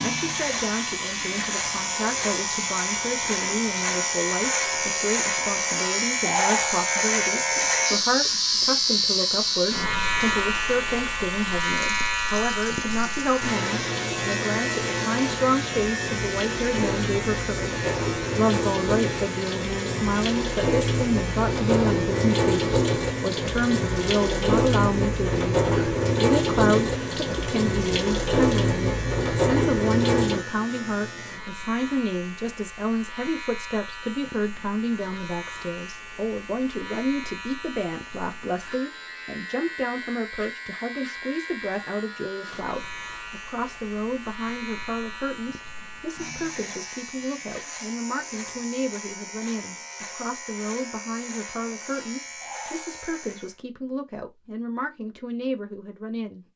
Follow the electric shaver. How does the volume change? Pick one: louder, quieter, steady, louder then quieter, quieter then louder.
quieter.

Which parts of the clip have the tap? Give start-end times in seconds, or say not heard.
0.0-30.4.